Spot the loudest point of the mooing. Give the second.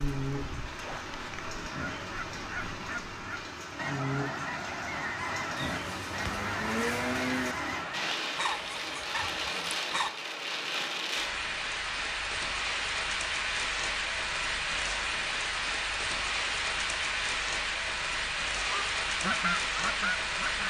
7 s.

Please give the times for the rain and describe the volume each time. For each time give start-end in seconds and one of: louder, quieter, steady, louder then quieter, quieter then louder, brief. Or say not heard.
0.0-20.6 louder.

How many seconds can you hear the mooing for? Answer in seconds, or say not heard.
2 s.